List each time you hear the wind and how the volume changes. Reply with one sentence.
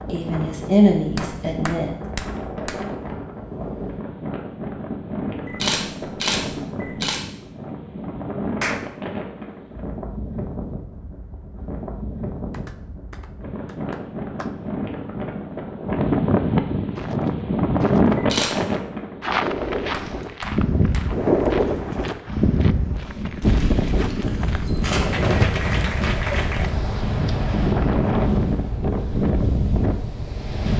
The wind can be heard from 0.0 to 30.7 s, getting louder.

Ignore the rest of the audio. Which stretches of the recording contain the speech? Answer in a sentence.
You can hear the speech from 0.1 to 1.9 s.